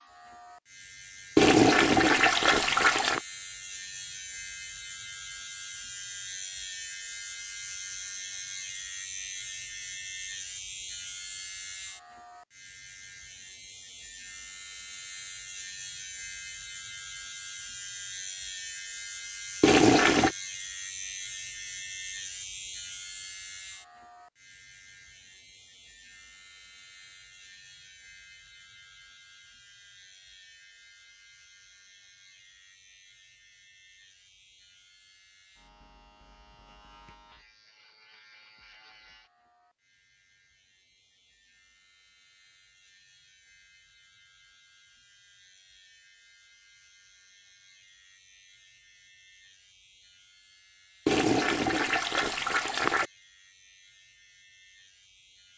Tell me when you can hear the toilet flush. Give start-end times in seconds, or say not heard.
1.4-3.2, 19.6-20.4, 51.0-53.0.